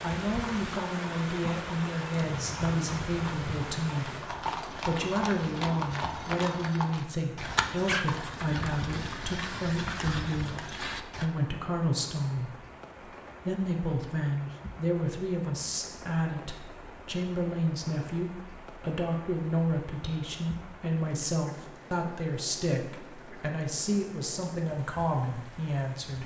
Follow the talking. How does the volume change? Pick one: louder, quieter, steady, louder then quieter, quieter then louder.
steady.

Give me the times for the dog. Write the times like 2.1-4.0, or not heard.
7.8-8.7.